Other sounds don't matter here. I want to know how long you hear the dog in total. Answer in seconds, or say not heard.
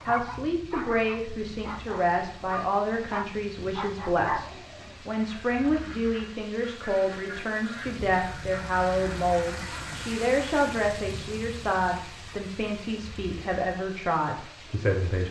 5 s.